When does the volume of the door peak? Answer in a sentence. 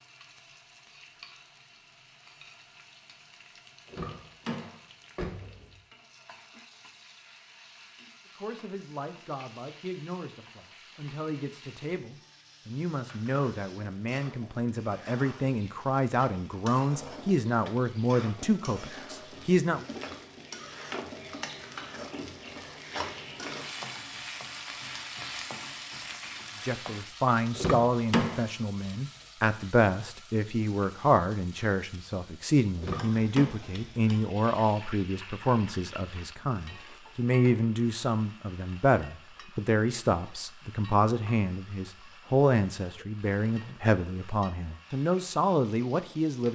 The loudest moment of the door is at 28 seconds.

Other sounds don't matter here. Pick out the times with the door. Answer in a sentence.
The door can be heard from 3.9 to 5.8 s, from 27.6 to 28.4 s and from 32.8 to 33.5 s.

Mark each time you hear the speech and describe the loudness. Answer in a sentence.
The speech can be heard from 8.3 to 19.9 s, getting louder; and from 26.6 to 46.4 s, at a steady volume.